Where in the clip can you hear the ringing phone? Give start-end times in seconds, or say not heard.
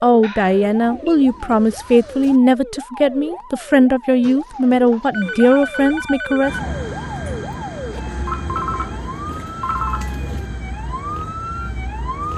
0.2-1.1, 5.1-6.6, 8.2-10.1.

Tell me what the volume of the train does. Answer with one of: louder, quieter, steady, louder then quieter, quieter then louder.
quieter.